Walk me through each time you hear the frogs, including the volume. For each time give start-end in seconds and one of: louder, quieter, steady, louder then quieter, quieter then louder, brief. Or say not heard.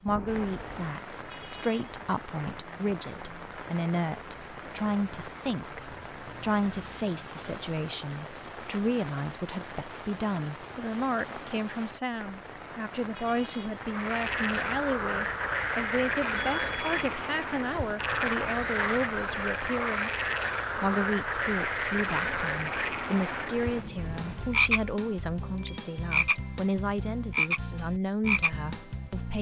13.8-29.3 steady.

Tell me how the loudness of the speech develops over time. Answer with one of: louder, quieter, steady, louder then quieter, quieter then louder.
steady.